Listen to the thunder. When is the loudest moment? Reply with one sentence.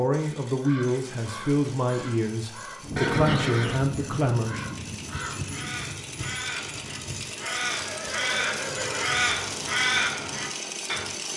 The volume of the thunder peaks at 3 seconds.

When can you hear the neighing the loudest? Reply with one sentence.
The loudest moment of the neighing is at 3 seconds.